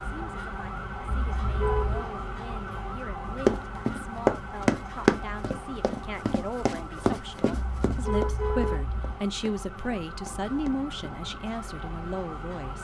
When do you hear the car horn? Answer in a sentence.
You can hear the car horn from 1.1 to 2.0 s and from 7.5 to 9.2 s.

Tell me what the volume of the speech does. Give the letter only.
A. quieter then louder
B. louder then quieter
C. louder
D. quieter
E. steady
C.